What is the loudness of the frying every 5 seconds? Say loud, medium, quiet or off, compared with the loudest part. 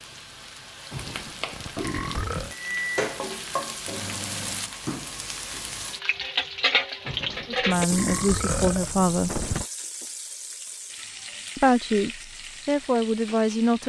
medium, loud, medium.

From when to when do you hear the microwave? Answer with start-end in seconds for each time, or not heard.
2.5-4.7.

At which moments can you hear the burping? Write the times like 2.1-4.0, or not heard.
0.9-2.5, 7.0-9.7.